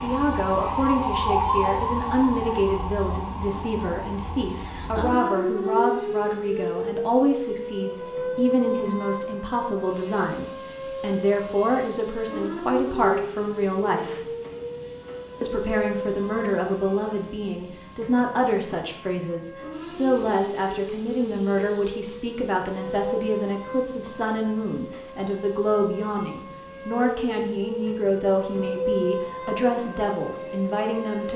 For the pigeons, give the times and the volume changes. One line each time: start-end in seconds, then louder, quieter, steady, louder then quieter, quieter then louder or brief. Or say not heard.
not heard.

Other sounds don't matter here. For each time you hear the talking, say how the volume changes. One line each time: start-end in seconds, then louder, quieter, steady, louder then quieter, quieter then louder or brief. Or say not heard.
0.0-14.2 steady
15.4-31.3 steady.